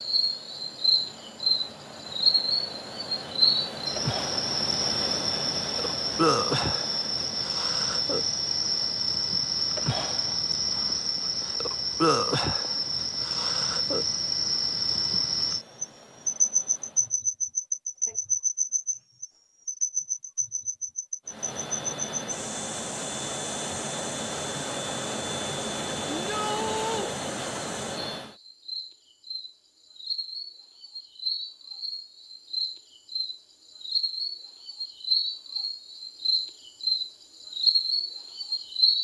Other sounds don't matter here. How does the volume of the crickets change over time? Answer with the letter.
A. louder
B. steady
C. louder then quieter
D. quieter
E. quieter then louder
E.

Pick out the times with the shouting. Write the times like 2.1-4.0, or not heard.
26.1-27.1.